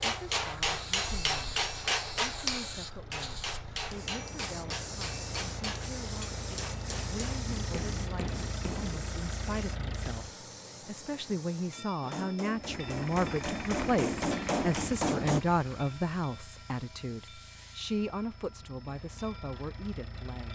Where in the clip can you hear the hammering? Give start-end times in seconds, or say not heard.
0.0-8.9, 12.0-15.4.